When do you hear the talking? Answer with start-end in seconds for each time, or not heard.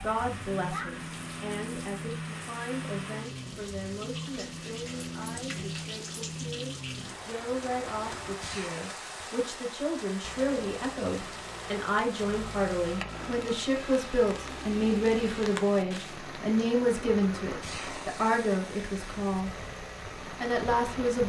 0.0-19.5, 20.4-21.2.